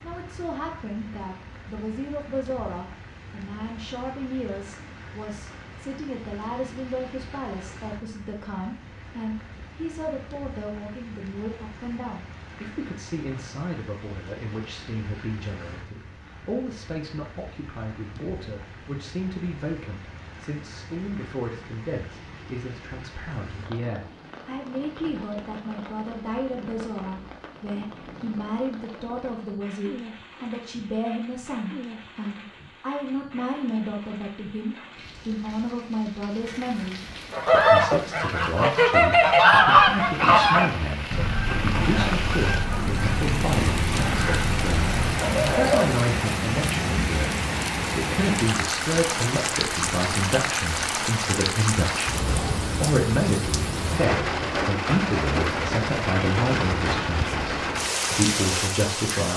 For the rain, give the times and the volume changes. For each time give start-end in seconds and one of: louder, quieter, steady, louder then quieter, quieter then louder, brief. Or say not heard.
0.0-59.3 louder.